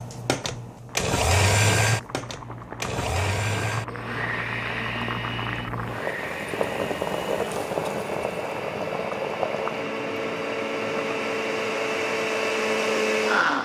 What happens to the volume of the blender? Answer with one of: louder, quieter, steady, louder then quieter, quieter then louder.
quieter then louder.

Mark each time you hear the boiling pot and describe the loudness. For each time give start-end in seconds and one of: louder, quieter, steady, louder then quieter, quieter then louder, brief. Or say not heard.
0.0-13.5 louder then quieter.